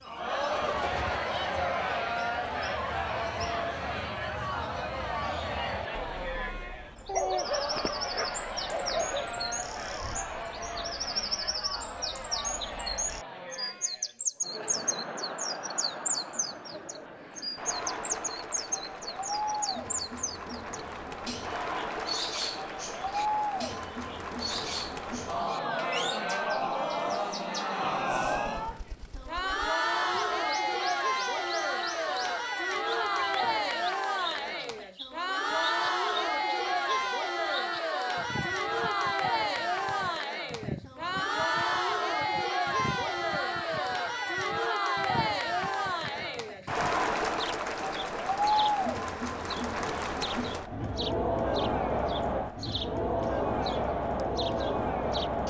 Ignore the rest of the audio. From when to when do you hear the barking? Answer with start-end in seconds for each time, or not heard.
7.0-9.6.